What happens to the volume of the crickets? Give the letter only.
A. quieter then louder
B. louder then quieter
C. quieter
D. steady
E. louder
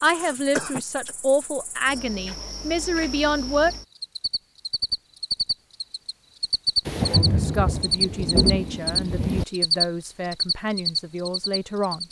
E.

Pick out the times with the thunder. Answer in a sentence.
The thunder can be heard from 6.8 to 9.4 s.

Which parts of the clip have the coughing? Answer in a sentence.
The coughing can be heard from 0.1 to 1.1 s.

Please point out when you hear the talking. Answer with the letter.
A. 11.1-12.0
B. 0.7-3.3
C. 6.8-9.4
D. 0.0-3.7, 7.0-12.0
D.